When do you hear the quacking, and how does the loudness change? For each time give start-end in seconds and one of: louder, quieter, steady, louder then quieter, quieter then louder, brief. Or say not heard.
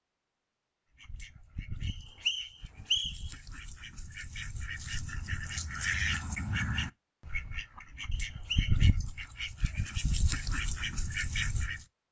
1.0-11.8 louder.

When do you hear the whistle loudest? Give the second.
3 s.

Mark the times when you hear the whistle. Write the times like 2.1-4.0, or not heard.
1.9-3.3, 8.1-8.8.